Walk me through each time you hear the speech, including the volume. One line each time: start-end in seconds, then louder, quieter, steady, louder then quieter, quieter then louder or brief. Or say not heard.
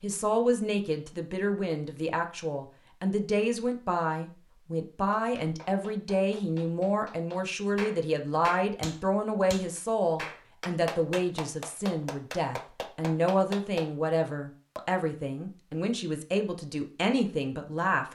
0.0-18.1 steady.